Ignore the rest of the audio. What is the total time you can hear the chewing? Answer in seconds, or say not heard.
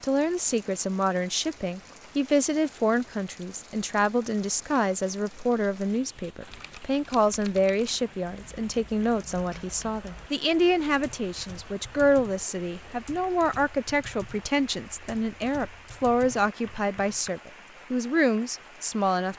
not heard.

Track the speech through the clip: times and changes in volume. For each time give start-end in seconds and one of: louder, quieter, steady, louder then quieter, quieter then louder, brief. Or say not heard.
0.0-19.3 steady.